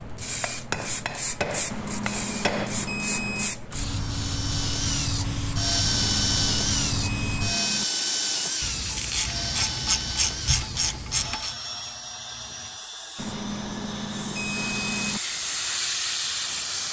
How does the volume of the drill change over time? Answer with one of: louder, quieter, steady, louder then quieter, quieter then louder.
quieter.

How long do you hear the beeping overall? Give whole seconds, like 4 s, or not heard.
6 s.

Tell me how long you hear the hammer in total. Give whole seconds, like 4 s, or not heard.
3 s.